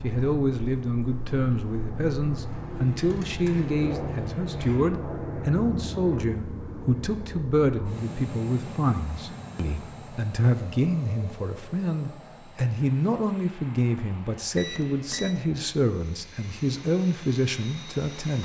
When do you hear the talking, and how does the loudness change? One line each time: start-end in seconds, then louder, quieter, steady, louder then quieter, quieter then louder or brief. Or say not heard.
0.0-18.3 steady.